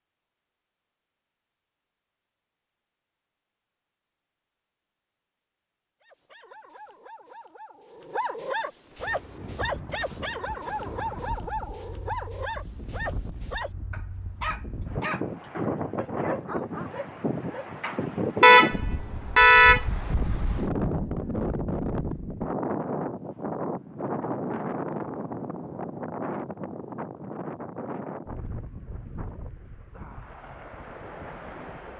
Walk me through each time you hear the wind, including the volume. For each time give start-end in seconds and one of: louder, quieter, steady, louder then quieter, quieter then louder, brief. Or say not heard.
8.9-31.9 louder then quieter.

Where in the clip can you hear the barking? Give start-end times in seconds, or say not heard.
6.0-17.7.